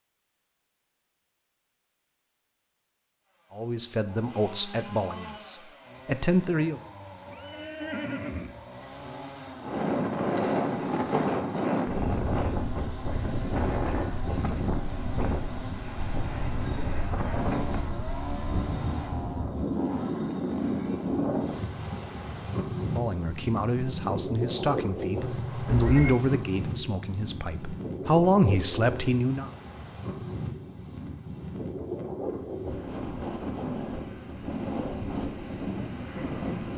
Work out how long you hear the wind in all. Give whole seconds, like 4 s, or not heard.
27 s.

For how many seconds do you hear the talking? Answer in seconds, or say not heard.
10 s.